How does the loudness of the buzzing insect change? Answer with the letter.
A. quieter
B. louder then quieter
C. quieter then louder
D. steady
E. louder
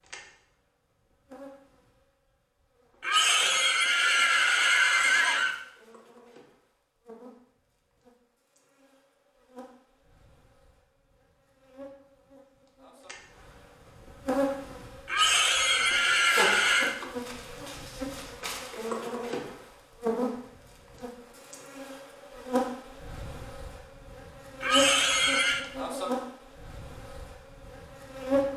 E.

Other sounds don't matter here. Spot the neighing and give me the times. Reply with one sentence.
The neighing can be heard from 3.0 to 5.5 s, from 15.1 to 16.9 s and from 24.6 to 25.6 s.